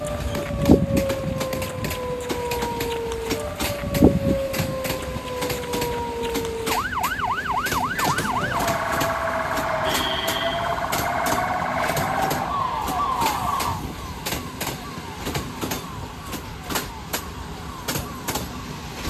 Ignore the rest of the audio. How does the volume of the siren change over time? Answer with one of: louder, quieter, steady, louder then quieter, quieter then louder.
quieter.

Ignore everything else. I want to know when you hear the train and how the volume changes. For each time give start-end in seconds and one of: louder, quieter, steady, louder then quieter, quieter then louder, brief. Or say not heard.
0.0-19.0 steady.